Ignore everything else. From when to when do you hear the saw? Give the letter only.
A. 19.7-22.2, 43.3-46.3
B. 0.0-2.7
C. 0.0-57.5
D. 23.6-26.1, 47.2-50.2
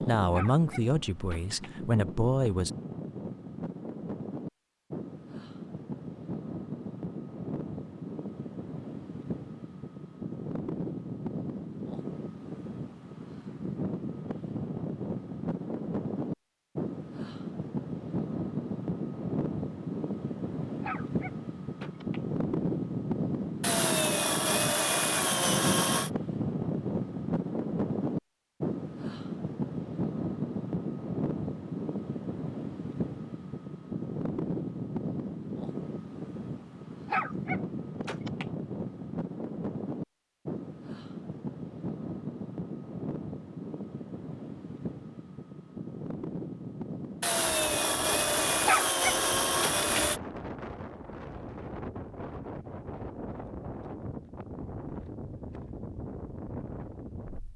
D.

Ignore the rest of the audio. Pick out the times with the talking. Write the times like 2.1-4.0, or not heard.
0.0-2.7.